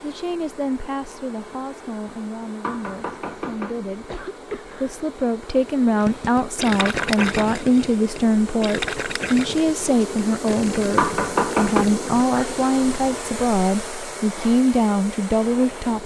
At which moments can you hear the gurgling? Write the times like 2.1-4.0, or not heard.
6.0-12.2.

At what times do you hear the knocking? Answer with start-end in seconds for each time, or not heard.
2.6-3.8, 6.8-7.2, 10.9-11.8.